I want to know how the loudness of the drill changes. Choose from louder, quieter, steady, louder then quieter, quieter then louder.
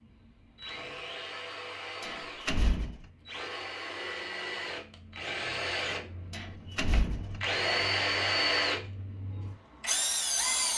louder.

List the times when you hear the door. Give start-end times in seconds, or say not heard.
2.0-3.0, 6.3-7.4.